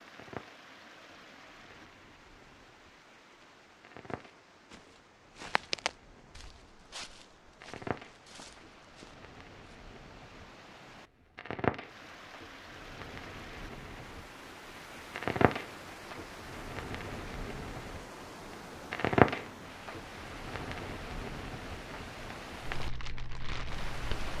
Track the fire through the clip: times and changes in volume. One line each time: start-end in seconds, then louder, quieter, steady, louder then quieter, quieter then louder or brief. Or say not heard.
0.1-24.3 louder.